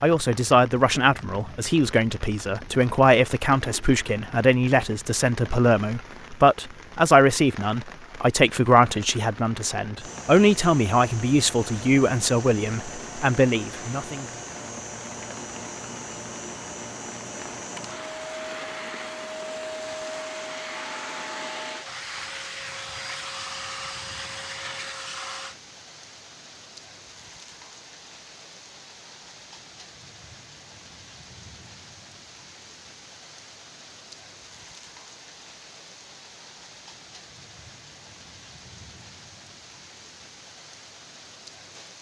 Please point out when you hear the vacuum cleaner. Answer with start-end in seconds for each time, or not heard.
9.9-25.6.